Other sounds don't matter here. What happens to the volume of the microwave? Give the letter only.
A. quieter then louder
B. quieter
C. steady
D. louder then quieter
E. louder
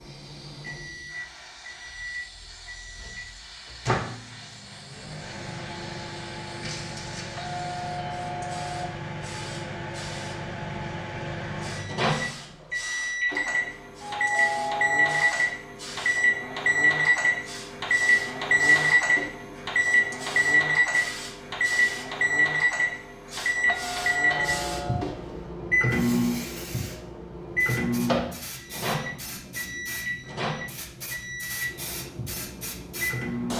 D.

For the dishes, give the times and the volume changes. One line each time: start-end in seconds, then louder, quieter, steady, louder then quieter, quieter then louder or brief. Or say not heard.
not heard.